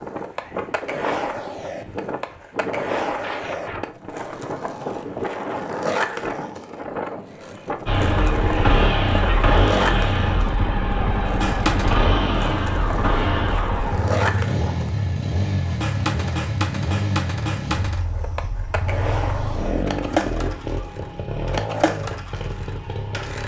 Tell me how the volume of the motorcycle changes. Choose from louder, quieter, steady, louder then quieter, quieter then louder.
quieter.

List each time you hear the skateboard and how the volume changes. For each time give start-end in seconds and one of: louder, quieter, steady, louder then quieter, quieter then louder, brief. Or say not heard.
0.0-23.4 steady.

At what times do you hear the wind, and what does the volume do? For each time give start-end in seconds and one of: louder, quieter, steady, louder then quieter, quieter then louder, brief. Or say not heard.
0.0-13.6 steady.